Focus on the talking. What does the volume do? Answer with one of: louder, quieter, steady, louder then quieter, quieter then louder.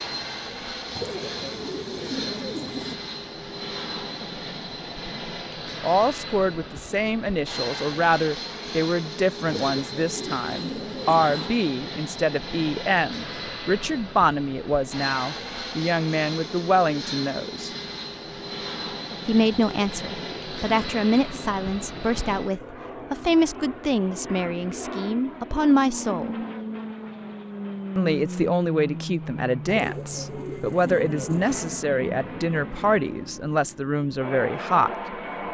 steady.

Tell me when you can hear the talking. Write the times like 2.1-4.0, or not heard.
5.8-17.7, 19.2-26.4, 27.9-35.0.